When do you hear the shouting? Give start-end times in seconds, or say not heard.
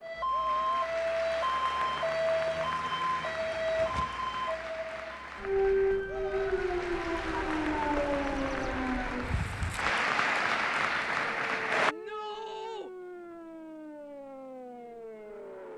0.3-0.8, 6.0-6.7, 11.8-12.9.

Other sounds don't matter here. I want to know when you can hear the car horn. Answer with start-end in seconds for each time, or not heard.
not heard.